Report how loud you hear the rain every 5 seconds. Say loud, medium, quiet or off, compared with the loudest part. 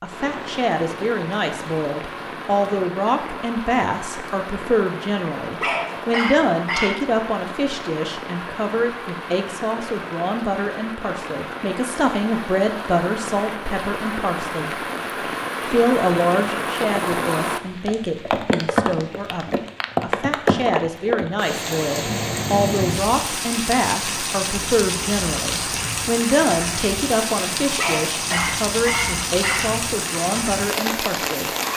medium, medium, medium, loud, loud, loud, loud.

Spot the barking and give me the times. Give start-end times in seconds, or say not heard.
5.6-7.0, 27.8-29.8.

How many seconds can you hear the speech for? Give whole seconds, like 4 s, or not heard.
31 s.